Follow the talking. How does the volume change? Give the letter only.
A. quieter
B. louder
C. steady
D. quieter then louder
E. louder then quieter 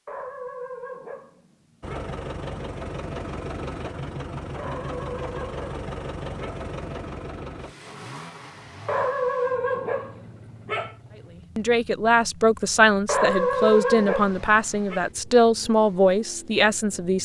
C.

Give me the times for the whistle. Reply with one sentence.
You can't hear the whistle here.